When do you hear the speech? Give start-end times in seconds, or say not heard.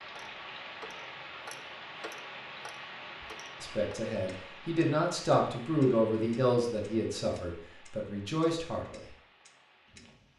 3.6-9.0.